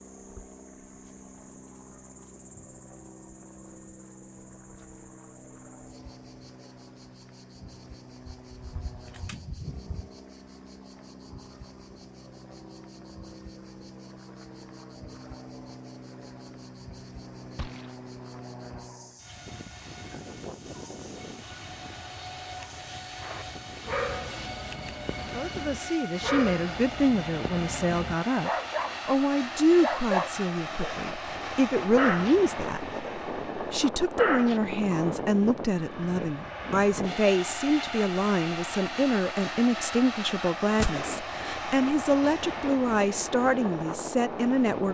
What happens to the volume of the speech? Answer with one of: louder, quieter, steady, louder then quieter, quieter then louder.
steady.